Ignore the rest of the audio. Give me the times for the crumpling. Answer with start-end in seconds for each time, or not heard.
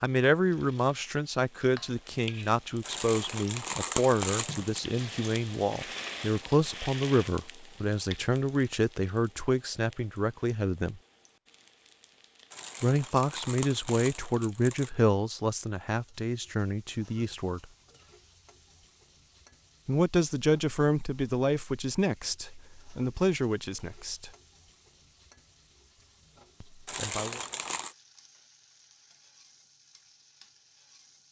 2.9-4.8, 12.5-14.9, 26.9-27.9.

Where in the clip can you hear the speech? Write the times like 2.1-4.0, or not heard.
0.0-11.0, 12.8-17.6, 19.9-24.3, 26.6-27.4.